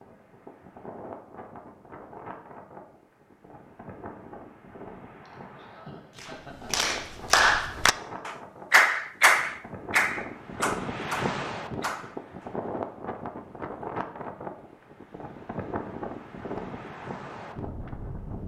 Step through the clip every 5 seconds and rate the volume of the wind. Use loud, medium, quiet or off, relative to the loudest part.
medium, medium, loud, loud.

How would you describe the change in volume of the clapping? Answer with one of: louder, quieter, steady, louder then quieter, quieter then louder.
quieter.